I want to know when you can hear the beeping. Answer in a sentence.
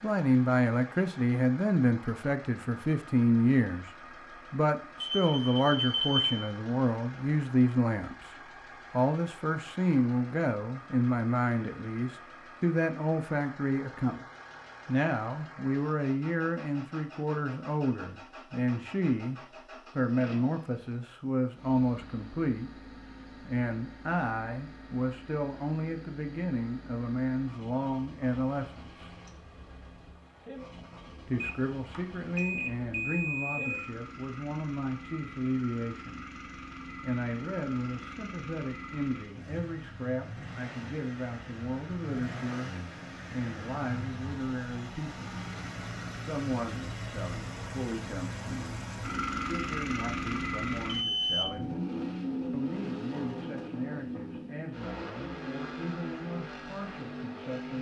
You can hear the beeping from 5.0 to 6.3 s, from 31.4 to 33.9 s and from 50.9 to 51.5 s.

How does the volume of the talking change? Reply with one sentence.
The volume of the talking goes down.